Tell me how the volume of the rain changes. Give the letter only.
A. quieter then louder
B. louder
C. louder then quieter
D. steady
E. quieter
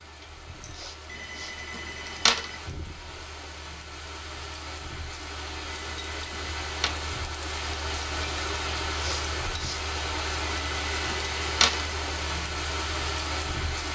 B.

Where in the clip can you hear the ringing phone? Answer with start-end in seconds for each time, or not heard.
1.1-2.5, 5.7-6.9, 10.4-11.9.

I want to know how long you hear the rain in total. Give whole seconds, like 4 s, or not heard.
14 s.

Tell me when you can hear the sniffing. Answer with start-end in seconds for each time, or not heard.
0.7-1.6, 8.9-9.8.